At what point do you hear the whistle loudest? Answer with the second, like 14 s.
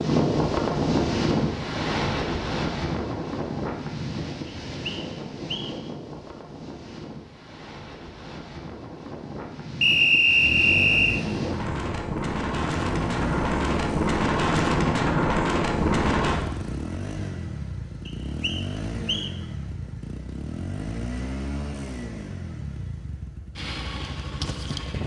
10 s.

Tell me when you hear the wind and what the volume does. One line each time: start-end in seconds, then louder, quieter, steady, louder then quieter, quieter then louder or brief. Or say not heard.
0.0-16.4 quieter then louder.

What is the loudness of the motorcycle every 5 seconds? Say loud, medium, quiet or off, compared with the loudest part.
off, off, loud, loud, loud.